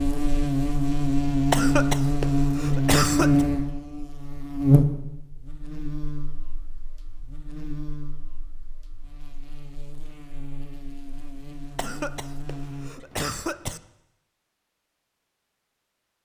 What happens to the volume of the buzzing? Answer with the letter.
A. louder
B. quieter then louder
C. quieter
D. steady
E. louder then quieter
C.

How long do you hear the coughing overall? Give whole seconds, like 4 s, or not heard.
4 s.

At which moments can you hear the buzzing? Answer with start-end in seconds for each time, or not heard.
0.0-12.9.